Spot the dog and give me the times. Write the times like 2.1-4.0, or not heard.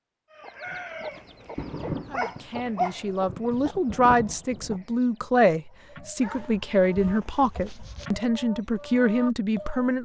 1.1-3.0, 6.2-8.1.